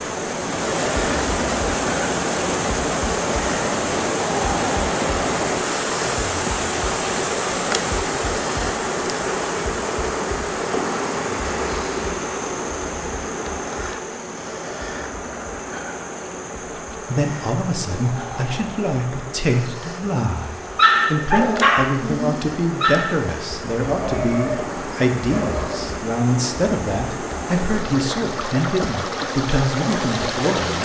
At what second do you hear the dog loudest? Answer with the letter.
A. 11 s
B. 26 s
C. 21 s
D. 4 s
C.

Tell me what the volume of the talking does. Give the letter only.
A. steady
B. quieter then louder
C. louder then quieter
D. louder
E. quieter
A.